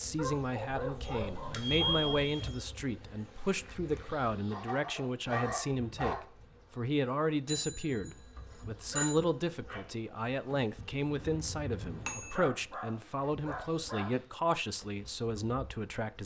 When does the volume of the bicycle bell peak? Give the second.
2 s.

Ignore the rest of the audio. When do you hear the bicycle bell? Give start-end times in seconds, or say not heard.
1.1-2.5, 7.5-9.2, 11.2-12.4.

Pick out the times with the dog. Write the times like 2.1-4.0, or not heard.
0.1-2.2, 4.5-6.2, 8.9-9.8, 12.2-14.2.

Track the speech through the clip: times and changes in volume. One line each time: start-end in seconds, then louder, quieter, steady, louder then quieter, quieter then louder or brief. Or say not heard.
0.0-16.2 steady.